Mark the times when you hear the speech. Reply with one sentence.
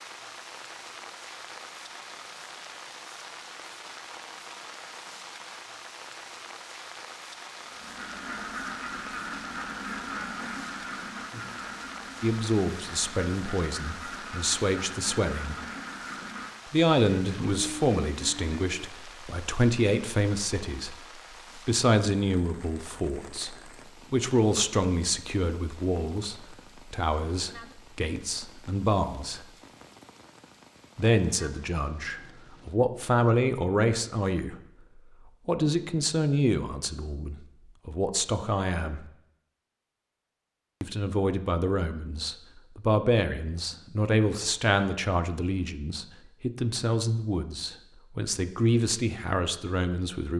You can hear the speech from 12.2 to 15.6 s, from 16.7 to 20.9 s, from 21.6 to 29.5 s, from 30.9 to 34.5 s, from 35.5 to 39.0 s and from 40.8 to 50.3 s.